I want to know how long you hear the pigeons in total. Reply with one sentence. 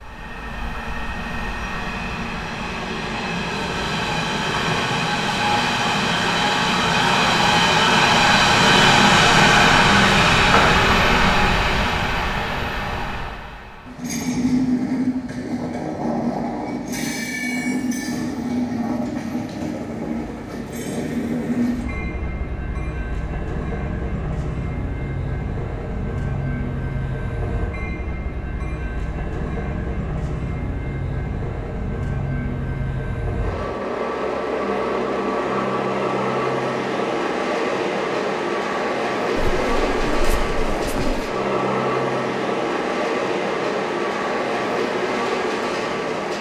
You can hear the pigeons for 2 seconds altogether.